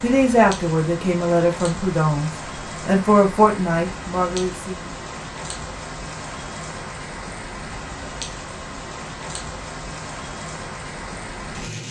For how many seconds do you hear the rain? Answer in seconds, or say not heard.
12 s.